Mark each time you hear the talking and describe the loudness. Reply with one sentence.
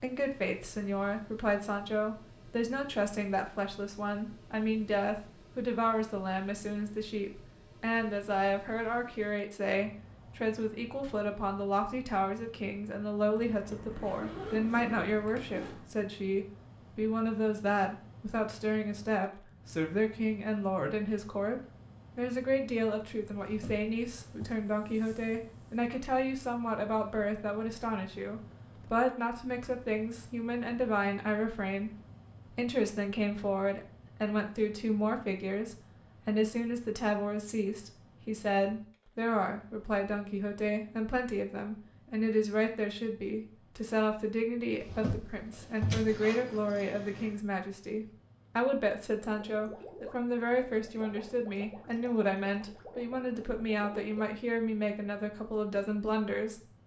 The talking can be heard from 0.0 to 56.8 s, at a steady volume.